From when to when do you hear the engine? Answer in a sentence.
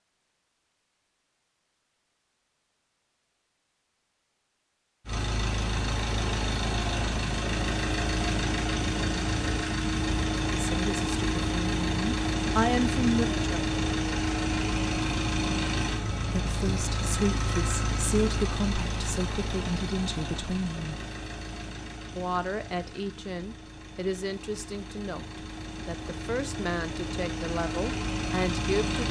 The engine can be heard from 5.0 to 29.0 s.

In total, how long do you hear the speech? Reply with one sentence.
You can hear the speech for 14 seconds altogether.